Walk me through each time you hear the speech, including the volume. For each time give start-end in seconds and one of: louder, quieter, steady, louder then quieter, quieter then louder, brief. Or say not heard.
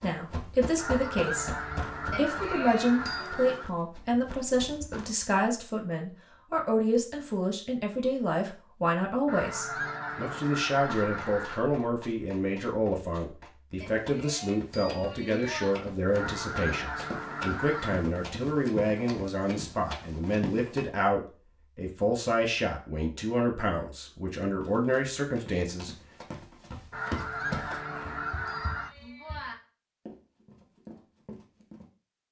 0.0-1.5 brief
2.1-25.9 steady.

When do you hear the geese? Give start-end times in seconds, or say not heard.
0.8-3.8, 9.2-11.7, 16.1-18.1, 26.9-28.9.